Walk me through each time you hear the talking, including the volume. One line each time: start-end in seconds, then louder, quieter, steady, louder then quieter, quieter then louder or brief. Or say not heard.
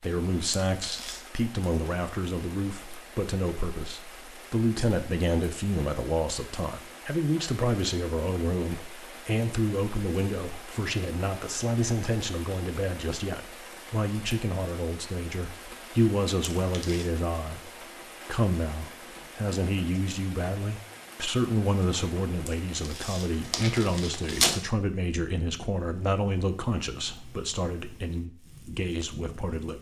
0.0-29.7 steady.